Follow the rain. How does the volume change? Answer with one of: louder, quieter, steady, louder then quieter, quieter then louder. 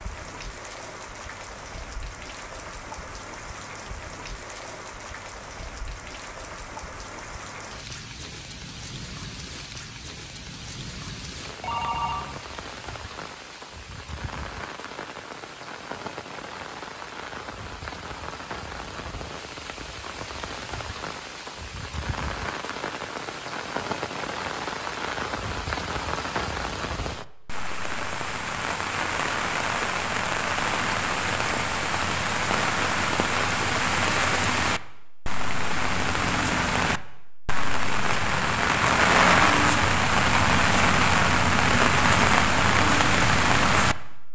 louder.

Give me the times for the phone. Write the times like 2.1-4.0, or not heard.
11.6-12.3.